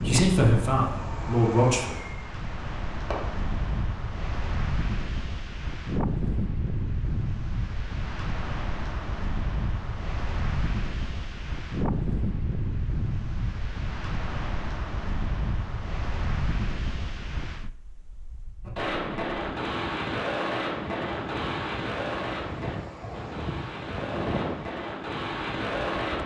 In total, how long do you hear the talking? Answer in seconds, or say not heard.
2 s.